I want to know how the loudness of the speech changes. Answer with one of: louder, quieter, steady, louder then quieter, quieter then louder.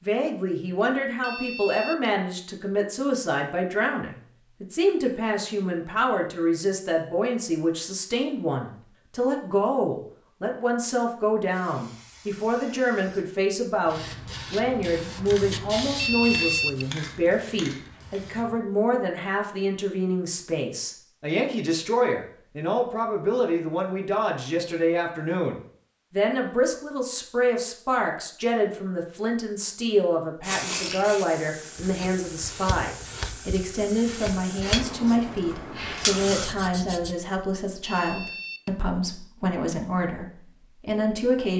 steady.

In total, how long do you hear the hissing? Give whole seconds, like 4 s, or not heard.
13 s.